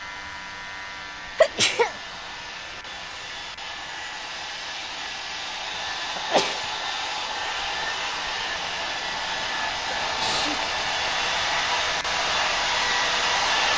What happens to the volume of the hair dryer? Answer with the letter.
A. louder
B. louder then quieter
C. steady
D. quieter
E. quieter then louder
A.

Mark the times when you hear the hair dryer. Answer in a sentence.
You can hear the hair dryer from 0.0 to 13.7 s.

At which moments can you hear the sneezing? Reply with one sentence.
You can hear the sneezing from 1.4 to 1.9 s, from 6.2 to 6.7 s and from 10.1 to 10.8 s.